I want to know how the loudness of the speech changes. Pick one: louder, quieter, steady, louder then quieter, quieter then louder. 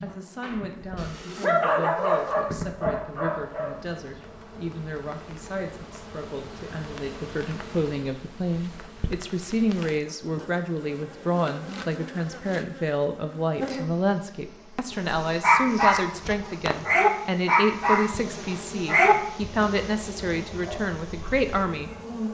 louder.